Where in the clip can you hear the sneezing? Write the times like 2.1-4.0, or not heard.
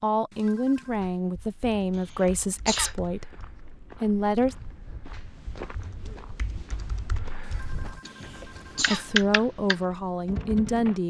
1.9-3.0, 8.1-9.1.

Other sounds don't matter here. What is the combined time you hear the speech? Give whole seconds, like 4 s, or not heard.
7 s.